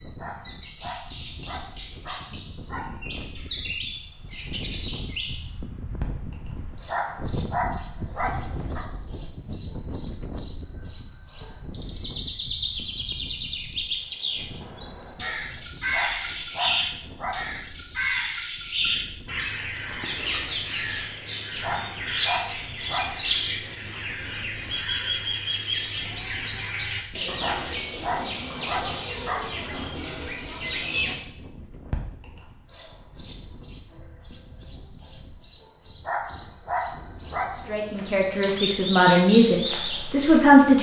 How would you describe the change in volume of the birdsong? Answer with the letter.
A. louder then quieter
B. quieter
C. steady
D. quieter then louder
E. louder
C.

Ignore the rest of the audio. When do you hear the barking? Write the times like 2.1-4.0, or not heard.
0.1-2.9, 6.8-8.8, 15.9-17.4, 21.6-23.1, 27.4-29.5, 36.0-37.5.